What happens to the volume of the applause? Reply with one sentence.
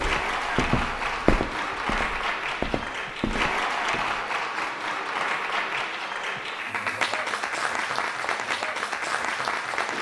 The loudness of the applause stays about the same.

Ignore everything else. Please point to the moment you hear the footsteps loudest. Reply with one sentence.
The volume of the footsteps peaks at 1 second.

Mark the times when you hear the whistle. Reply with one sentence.
The whistle can't be heard in this clip.